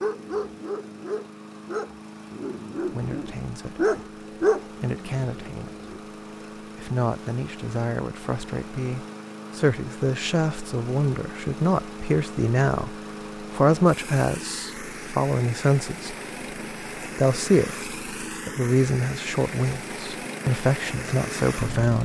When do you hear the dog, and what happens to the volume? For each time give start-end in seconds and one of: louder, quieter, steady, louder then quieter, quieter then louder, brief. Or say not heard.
0.0-6.0 louder then quieter.